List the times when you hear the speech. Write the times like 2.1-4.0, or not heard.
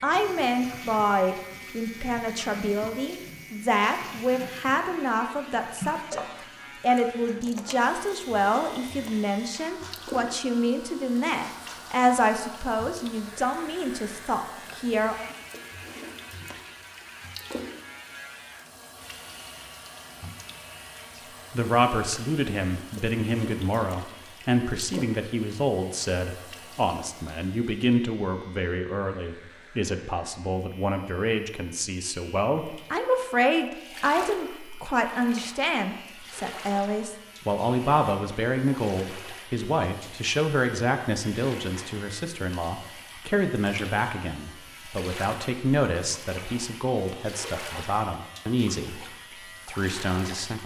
0.0-15.3, 21.5-50.6.